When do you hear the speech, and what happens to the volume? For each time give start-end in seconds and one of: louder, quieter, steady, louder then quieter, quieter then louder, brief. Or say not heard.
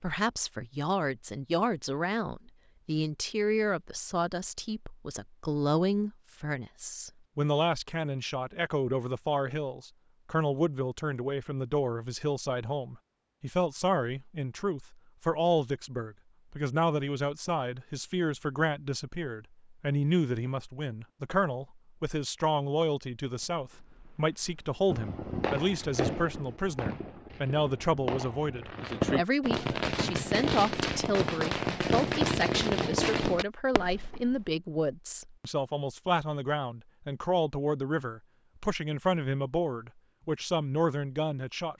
0.0-41.7 steady.